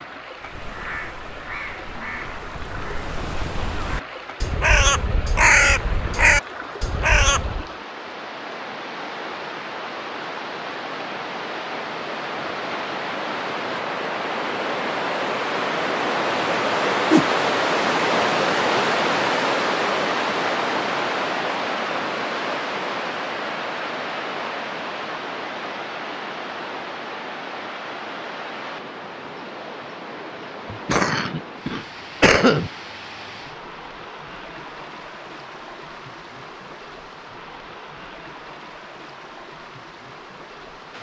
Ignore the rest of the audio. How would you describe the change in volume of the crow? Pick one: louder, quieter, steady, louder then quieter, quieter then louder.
louder.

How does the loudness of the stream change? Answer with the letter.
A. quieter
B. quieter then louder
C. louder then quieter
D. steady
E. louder
C.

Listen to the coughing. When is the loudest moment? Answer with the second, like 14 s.
32 s.